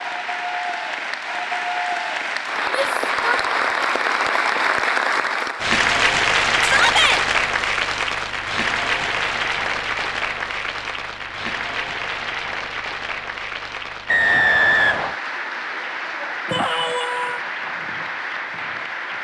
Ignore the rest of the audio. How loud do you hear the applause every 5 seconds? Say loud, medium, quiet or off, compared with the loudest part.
loud, loud, medium, medium.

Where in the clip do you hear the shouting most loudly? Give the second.
7 s.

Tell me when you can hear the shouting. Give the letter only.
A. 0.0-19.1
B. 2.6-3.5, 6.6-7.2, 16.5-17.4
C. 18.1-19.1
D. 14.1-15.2
B.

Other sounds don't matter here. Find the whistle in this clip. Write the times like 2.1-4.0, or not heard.
14.1-15.2.